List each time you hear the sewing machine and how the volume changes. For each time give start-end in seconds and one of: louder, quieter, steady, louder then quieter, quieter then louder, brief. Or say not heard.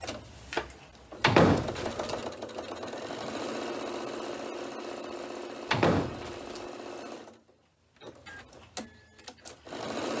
0.0-10.1 quieter.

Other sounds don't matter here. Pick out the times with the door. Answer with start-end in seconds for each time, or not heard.
1.2-2.1, 5.7-6.6.